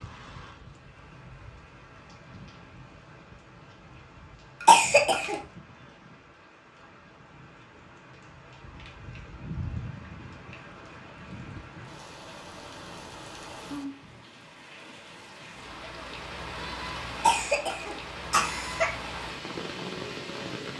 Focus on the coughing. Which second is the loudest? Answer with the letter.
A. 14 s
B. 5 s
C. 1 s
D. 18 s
B.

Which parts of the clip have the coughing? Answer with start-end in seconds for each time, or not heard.
4.6-5.3, 17.1-18.9.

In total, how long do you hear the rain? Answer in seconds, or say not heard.
21 s.